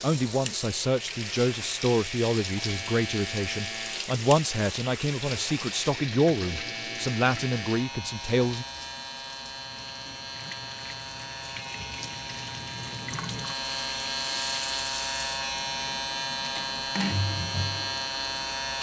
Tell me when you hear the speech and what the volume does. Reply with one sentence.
The speech can be heard from 0.0 to 8.7 s, at a steady volume.